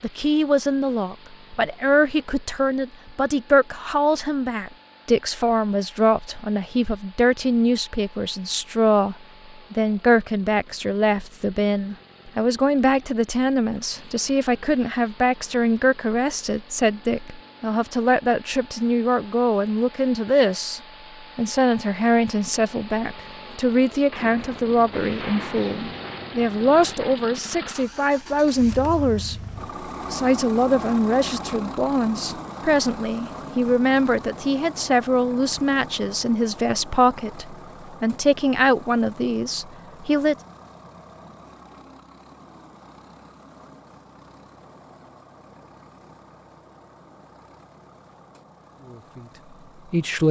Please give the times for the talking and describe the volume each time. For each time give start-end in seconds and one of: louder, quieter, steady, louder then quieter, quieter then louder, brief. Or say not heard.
0.0-29.4 steady
30.1-40.4 steady
48.8-50.2 brief.